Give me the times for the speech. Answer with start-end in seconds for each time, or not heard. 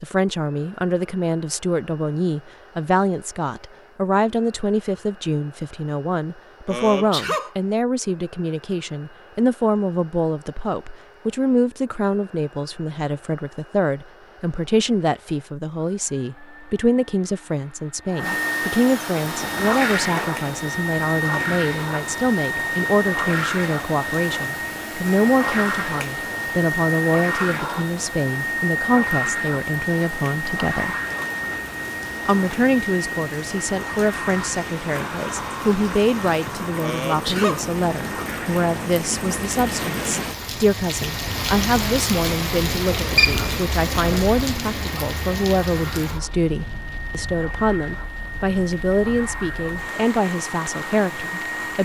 0.0-30.9, 32.2-51.8.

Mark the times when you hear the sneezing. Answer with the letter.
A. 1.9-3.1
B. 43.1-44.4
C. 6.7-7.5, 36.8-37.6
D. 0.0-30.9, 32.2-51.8
C.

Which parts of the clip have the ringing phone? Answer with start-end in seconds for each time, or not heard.
43.1-44.4.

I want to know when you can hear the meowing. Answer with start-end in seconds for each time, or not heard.
not heard.